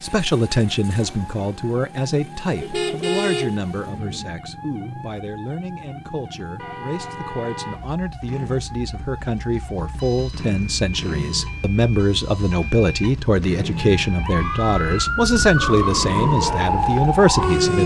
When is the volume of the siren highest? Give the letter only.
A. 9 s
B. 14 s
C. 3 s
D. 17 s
D.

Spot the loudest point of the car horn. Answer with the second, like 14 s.
3 s.